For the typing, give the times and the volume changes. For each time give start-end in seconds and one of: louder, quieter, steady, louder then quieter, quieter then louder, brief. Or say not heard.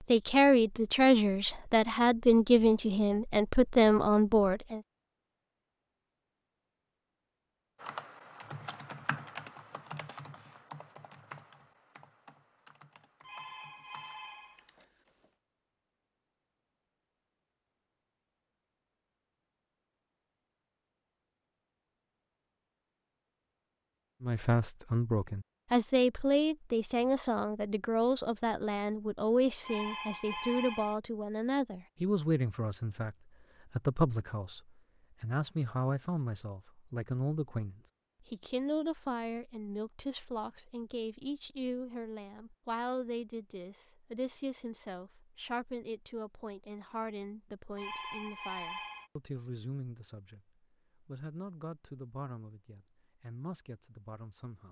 7.8-14.8 quieter.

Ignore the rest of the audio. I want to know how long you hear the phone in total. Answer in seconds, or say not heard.
5 s.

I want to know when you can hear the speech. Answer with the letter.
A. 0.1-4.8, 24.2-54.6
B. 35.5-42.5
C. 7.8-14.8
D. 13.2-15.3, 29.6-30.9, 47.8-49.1
A.